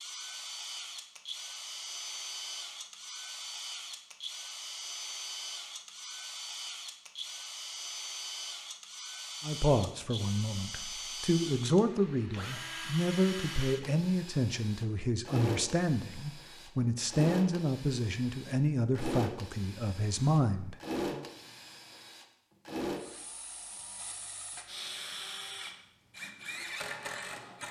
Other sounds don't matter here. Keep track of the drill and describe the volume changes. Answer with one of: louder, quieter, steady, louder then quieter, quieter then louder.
steady.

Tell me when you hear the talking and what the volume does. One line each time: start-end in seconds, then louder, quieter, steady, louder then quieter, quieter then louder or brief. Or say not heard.
9.4-21.2 steady.